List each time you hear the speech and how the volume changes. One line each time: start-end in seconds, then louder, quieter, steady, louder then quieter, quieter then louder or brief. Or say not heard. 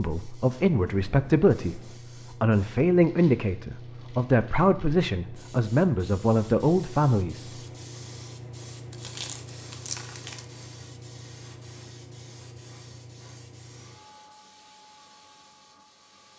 0.0-7.6 steady.